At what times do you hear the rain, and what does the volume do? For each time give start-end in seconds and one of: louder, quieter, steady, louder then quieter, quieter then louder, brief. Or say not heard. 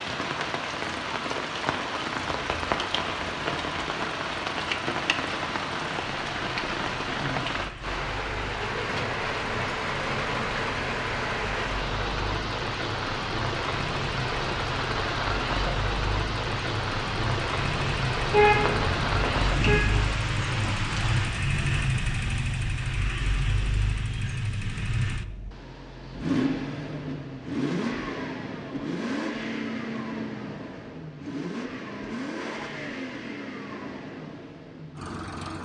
0.0-21.4 steady.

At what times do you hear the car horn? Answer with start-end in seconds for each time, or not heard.
18.3-19.9.